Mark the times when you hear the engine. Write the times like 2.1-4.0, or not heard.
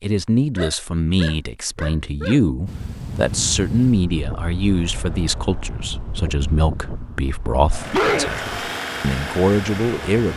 7.7-10.3.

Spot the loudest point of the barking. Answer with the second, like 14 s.
8 s.